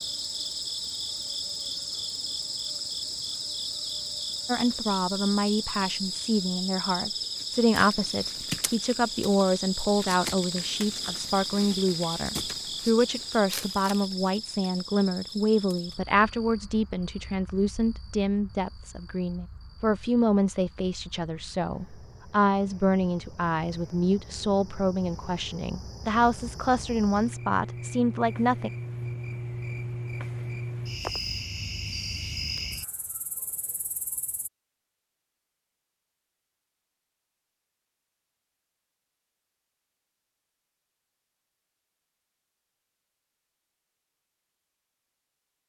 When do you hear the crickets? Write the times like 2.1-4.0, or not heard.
0.0-34.5.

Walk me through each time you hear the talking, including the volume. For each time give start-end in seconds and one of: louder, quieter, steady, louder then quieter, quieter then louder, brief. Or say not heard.
4.5-28.7 steady.